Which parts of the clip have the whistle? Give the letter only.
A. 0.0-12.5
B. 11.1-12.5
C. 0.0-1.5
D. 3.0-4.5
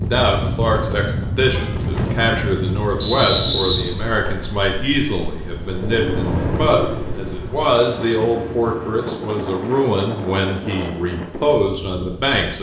D.